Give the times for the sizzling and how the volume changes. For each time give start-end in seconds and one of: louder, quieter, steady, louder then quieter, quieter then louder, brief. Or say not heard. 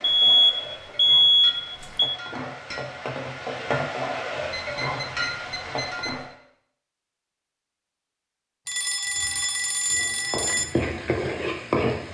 0.0-6.3 louder
9.1-12.0 brief.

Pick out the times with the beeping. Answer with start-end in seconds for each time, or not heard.
0.0-2.1, 4.5-6.2, 8.7-10.7.